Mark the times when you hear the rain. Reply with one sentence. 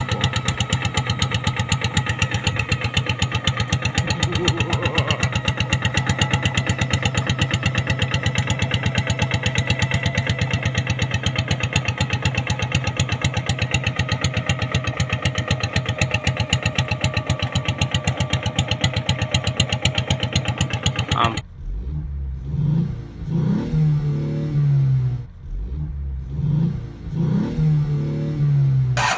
You can't hear the rain here.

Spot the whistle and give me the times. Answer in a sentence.
The whistle can't be heard in this clip.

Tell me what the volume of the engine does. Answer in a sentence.
The loudness of the engine stays about the same.